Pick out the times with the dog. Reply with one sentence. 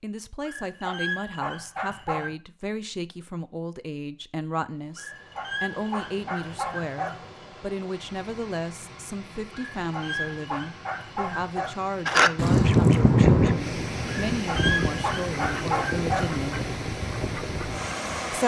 You can hear the dog from 0.5 to 2.4 s, from 5.0 to 7.3 s, from 9.5 to 11.9 s and from 14.3 to 16.4 s.